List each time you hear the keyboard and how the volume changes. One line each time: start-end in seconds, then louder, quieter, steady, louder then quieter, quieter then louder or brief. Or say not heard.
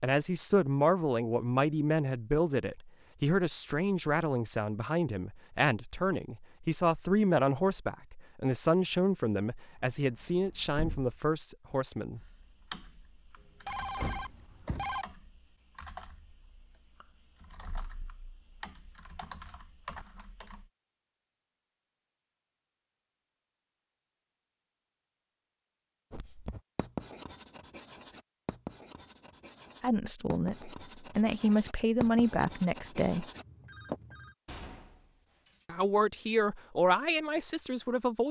12.2-20.7 quieter then louder.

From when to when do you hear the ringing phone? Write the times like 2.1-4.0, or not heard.
13.4-15.1, 33.4-34.4.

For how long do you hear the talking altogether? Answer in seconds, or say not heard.
18 s.